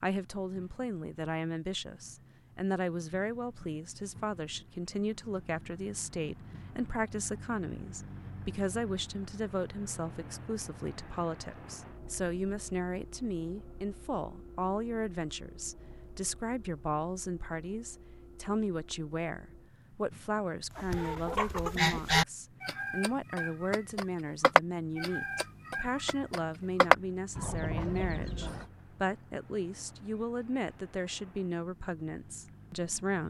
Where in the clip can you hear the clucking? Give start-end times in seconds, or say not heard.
20.8-28.6.